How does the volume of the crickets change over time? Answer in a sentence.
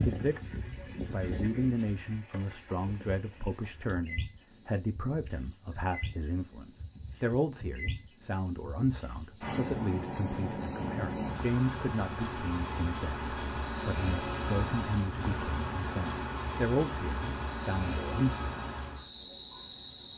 The loudness of the crickets goes up.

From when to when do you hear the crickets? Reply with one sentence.
You can hear the crickets from 0.0 to 20.1 s.